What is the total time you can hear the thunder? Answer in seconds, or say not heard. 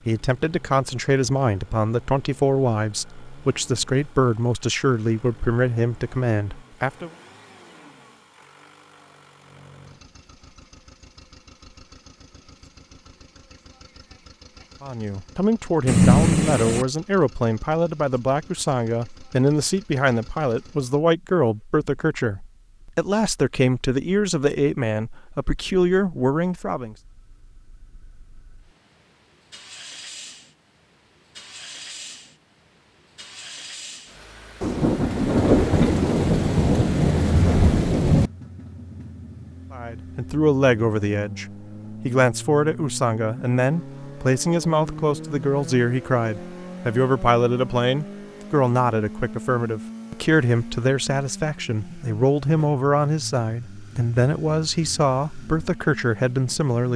5 s.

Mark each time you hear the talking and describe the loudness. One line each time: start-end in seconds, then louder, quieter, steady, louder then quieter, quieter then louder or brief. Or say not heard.
0.1-7.1 steady
14.8-26.9 steady
39.7-56.9 steady.